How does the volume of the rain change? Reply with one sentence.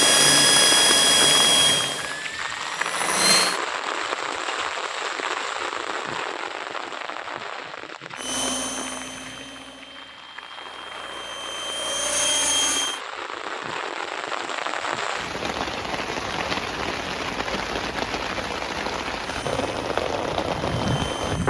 The volume of the rain goes down, then up.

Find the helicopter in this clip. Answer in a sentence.
The helicopter can be heard from 0.0 to 3.6 s, from 8.2 to 13.0 s and from 19.2 to 21.4 s.